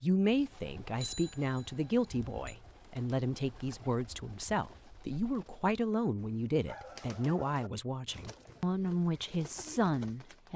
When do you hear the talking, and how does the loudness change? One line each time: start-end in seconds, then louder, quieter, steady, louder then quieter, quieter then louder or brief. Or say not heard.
0.0-10.5 steady.